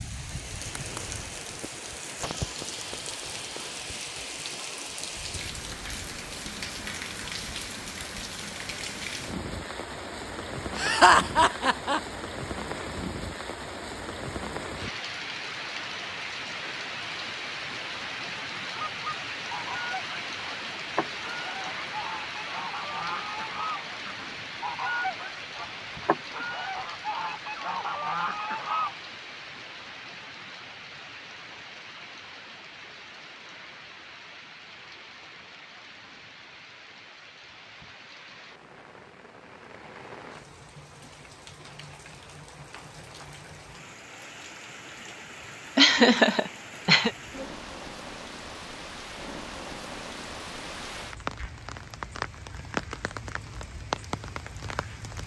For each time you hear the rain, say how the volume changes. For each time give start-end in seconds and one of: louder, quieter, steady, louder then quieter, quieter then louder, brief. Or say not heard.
0.0-55.2 quieter then louder.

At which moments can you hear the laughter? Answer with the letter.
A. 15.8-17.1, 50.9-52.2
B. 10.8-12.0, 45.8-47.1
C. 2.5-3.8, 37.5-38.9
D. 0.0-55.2
B.